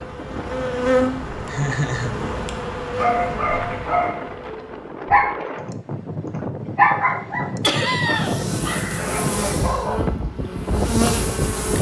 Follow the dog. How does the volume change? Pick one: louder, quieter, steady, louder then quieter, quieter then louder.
louder then quieter.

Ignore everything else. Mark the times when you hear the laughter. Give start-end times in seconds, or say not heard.
1.4-2.1, 7.6-8.4.